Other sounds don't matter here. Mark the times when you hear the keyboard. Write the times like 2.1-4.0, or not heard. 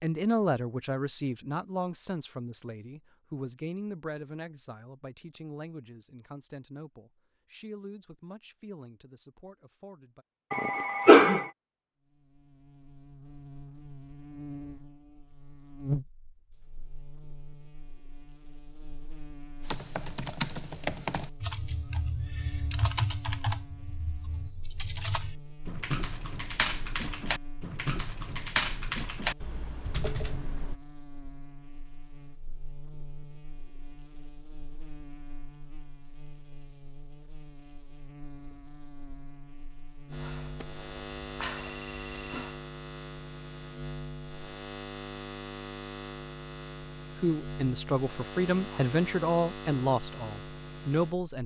19.6-30.8.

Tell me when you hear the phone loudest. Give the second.
11 s.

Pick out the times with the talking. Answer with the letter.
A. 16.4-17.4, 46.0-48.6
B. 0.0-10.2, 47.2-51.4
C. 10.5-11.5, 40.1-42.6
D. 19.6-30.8
B.